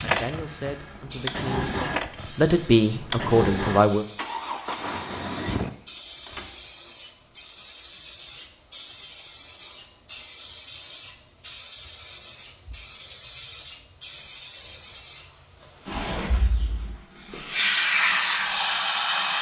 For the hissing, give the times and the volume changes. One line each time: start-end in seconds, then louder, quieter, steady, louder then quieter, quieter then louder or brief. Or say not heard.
0.0-19.3 louder.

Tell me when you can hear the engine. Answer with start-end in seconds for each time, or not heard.
0.0-5.7.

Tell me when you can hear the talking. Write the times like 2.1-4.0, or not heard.
0.0-4.0.